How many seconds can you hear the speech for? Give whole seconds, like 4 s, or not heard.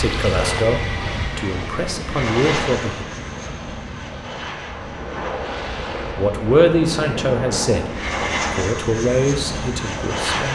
7 s.